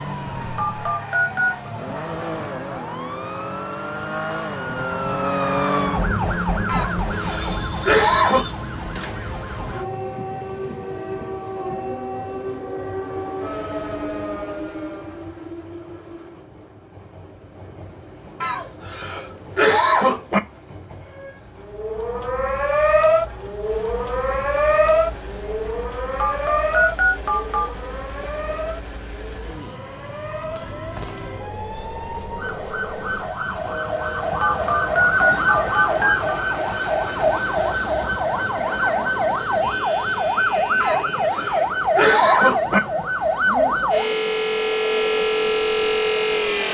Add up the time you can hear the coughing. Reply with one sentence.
The coughing can be heard for 6 seconds in total.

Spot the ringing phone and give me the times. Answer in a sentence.
You can hear the ringing phone from 0.6 to 1.7 s, from 26.2 to 27.7 s and from 34.4 to 36.4 s.